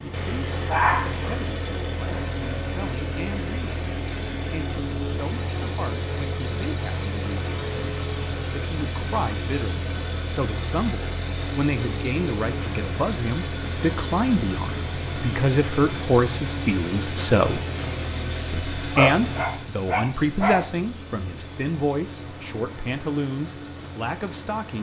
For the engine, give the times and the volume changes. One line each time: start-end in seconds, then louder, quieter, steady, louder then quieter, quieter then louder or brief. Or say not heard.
0.0-24.7 quieter.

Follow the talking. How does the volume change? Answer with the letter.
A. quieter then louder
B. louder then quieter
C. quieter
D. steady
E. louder
B.